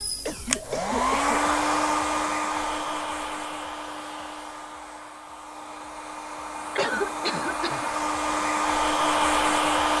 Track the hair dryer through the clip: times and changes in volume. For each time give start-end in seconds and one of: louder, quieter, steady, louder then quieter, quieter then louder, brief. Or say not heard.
0.0-9.9 quieter then louder.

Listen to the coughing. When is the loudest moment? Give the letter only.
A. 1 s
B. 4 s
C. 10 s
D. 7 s
D.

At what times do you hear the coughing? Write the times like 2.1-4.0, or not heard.
0.2-1.4, 6.8-7.9.